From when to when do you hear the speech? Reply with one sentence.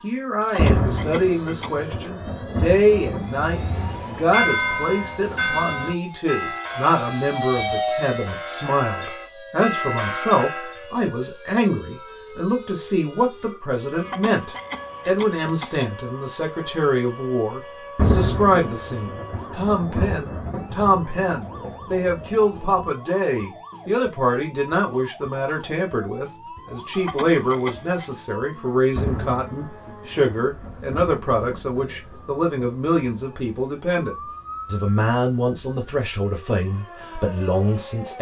The speech can be heard from 0.0 to 38.1 s.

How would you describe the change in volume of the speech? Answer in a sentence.
The loudness of the speech stays about the same.